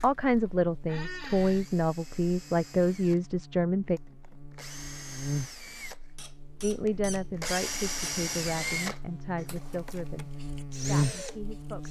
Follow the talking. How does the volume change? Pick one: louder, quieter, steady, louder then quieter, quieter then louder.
quieter.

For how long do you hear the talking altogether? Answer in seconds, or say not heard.
9 s.